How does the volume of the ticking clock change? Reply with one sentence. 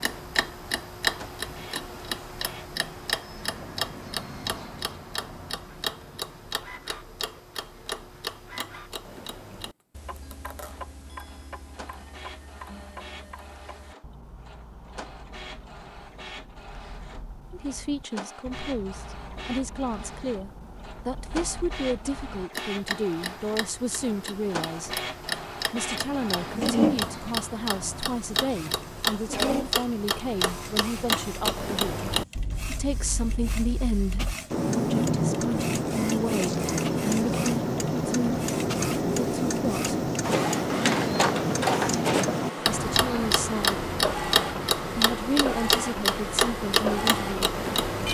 The loudness of the ticking clock goes down, then up.